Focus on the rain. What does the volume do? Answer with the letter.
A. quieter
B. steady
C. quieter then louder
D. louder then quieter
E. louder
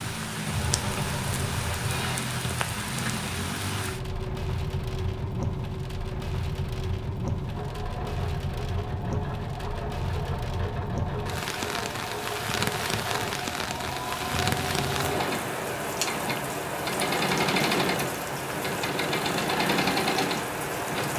B.